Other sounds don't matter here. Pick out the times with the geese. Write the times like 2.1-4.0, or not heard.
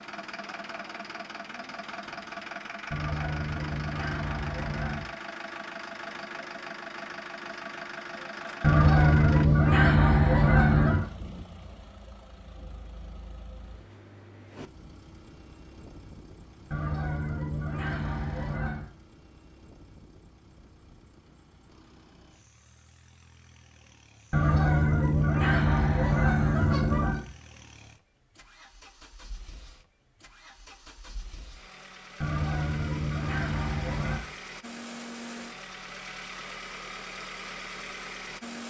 2.9-5.0, 8.6-11.1, 16.7-18.9, 24.3-27.2, 32.2-34.2.